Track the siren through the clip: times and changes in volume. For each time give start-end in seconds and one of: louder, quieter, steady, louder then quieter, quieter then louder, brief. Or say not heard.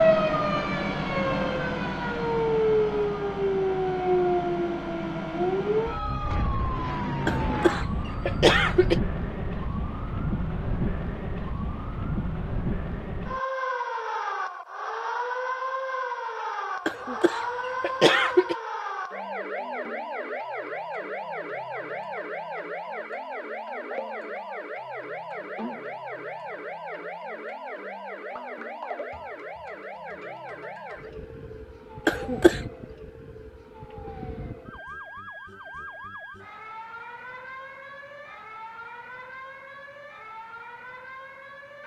0.0-41.8 quieter.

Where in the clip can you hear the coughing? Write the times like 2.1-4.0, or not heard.
7.2-9.0, 16.9-18.6, 32.0-32.6.